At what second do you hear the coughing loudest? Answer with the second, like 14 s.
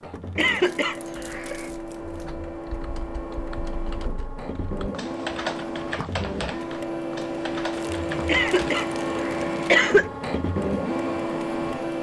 10 s.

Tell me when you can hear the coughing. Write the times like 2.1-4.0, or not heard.
0.3-1.6, 8.2-10.1.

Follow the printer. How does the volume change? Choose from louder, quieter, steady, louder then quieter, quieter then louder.
louder.